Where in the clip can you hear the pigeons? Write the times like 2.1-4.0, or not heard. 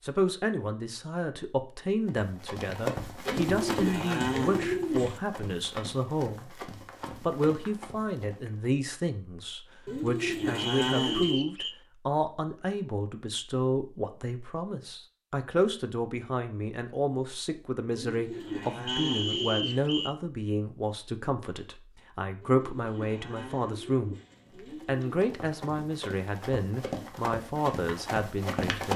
3.2-5.2, 9.8-11.4, 17.9-19.9, 22.4-25.2.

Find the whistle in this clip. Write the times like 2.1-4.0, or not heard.
10.6-11.8, 18.9-20.1.